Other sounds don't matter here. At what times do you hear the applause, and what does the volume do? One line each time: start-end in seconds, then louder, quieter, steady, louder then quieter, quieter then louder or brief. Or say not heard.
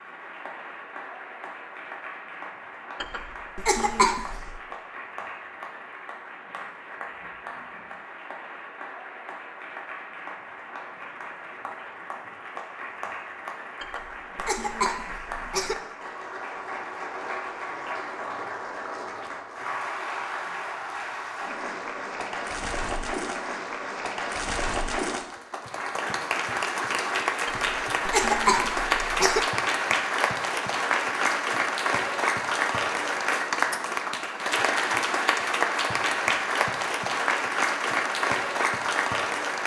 0.0-39.6 louder.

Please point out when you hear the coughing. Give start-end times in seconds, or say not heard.
3.0-4.5, 13.8-15.8, 27.4-29.4.